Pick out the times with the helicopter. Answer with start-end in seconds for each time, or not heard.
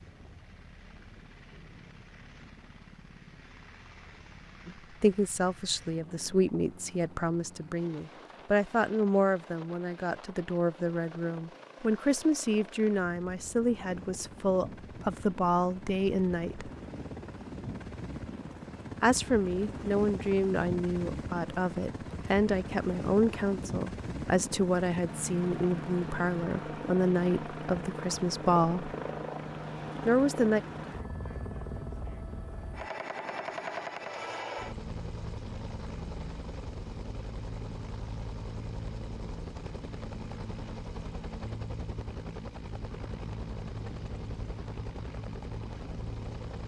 0.0-46.6.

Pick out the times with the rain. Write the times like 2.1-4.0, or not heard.
not heard.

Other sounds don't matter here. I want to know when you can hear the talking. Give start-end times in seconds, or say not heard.
4.7-16.7, 19.0-28.9, 30.1-30.6.